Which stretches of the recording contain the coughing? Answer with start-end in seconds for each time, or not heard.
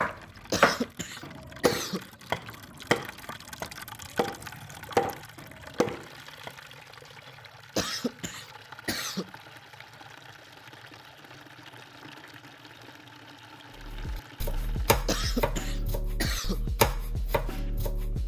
0.5-2.0, 7.8-9.3, 15.1-16.6.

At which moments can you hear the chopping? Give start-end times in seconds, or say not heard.
0.0-6.5, 13.8-18.2.